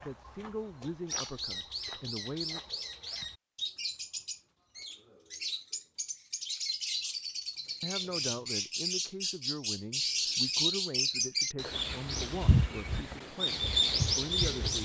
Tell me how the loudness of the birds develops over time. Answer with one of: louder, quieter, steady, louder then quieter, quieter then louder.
louder.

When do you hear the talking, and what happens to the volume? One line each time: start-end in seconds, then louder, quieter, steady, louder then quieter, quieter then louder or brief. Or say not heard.
0.0-2.6 brief
7.8-14.8 steady.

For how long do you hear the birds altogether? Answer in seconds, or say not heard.
15 s.